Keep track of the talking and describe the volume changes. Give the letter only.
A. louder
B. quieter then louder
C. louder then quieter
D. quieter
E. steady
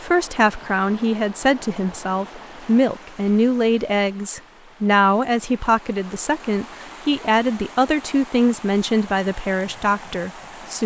E.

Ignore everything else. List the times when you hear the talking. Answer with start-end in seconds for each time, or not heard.
0.0-10.8.